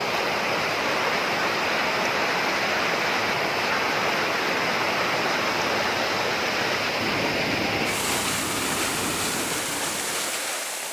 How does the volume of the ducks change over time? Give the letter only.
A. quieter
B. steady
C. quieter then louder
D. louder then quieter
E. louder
B.